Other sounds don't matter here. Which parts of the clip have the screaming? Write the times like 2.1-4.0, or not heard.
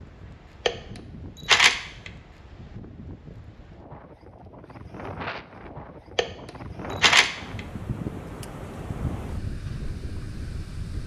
not heard.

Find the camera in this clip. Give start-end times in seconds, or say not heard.
0.7-2.1, 6.2-7.6.